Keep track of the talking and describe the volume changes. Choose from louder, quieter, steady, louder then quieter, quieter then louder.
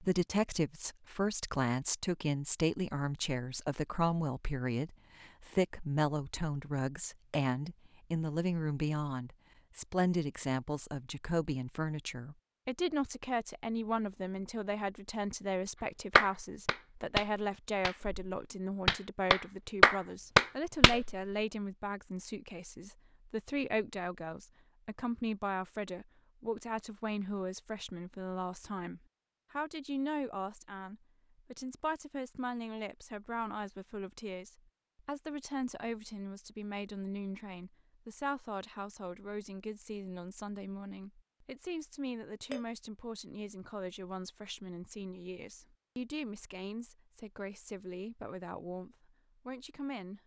quieter.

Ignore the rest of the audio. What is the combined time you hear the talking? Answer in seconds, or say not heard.
50 s.